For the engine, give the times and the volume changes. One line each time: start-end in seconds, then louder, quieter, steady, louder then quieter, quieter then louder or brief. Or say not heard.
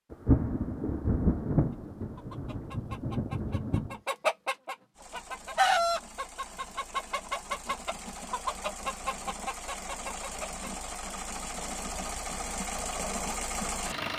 5.0-14.1 louder.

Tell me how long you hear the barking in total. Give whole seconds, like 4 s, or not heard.
not heard.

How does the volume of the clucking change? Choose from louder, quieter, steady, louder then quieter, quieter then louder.
louder then quieter.